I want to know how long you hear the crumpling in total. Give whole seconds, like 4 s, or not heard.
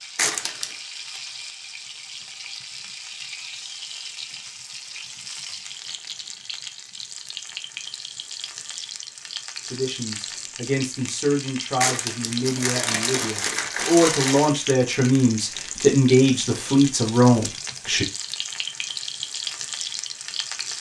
3 s.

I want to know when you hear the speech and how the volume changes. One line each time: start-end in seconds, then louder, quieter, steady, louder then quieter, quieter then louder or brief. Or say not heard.
9.7-18.1 louder.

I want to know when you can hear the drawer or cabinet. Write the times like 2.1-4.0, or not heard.
not heard.